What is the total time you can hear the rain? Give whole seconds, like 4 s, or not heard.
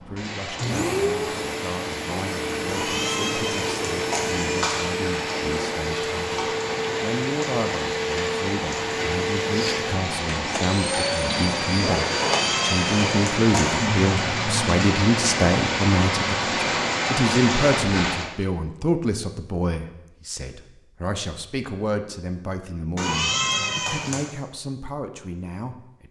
18 s.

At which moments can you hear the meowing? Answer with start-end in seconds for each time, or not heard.
2.6-5.0, 12.1-13.9, 22.9-24.4.